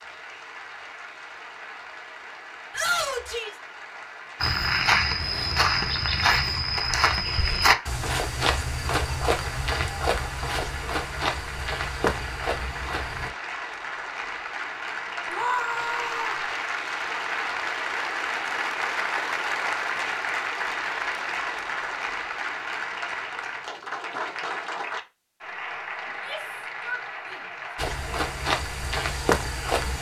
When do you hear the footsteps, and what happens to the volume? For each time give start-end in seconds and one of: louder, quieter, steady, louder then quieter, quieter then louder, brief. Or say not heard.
4.4-13.3 quieter
27.8-29.9 brief.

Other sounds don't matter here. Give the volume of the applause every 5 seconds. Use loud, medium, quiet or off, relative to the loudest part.
quiet, medium, medium, loud, loud, medium.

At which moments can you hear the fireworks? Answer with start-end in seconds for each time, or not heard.
not heard.